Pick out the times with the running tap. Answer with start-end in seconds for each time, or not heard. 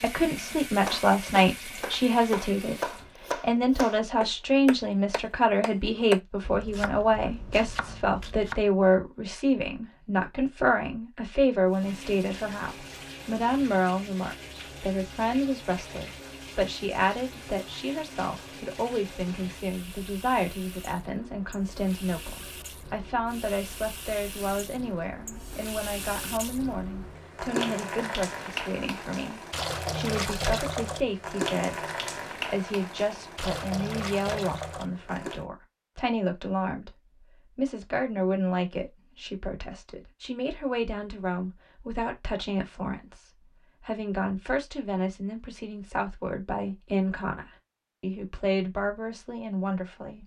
0.0-3.1, 11.7-35.5.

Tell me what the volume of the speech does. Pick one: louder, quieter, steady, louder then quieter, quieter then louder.
quieter.